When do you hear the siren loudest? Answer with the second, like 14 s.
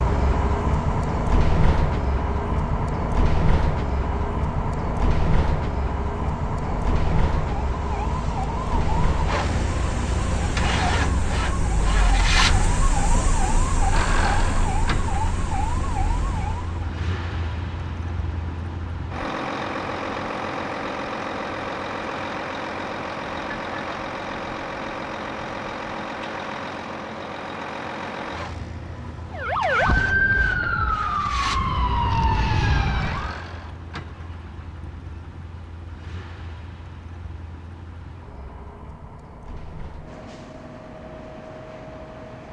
30 s.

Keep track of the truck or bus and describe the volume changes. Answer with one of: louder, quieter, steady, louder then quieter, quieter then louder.
quieter.